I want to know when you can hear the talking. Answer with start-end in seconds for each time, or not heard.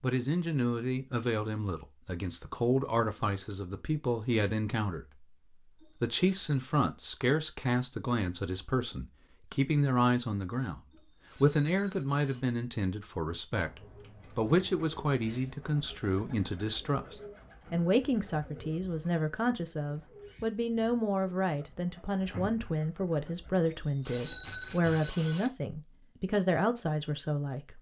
0.0-10.8, 11.4-27.7.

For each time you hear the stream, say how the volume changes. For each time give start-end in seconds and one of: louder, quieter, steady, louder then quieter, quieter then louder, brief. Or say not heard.
not heard.